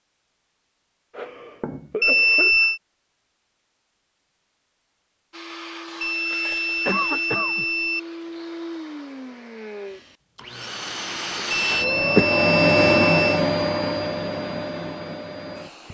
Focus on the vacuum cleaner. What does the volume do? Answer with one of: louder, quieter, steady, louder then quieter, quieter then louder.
louder then quieter.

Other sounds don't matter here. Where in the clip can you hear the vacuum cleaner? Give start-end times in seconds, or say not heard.
5.3-15.8.